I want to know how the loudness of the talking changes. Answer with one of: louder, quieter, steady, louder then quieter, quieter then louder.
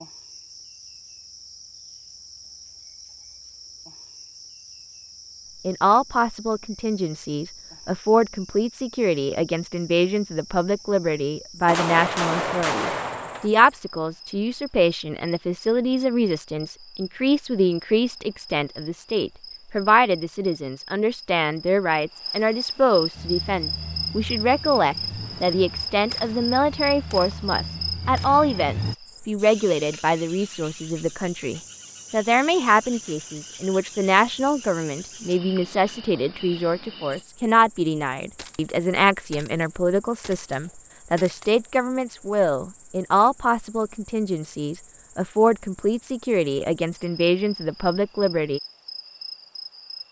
steady.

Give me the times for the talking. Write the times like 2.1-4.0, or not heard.
5.7-48.6.